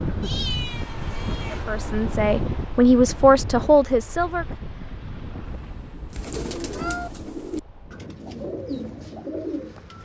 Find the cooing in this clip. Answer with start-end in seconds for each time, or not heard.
6.1-10.0.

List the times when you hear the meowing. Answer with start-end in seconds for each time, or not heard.
0.2-1.6, 5.5-7.1.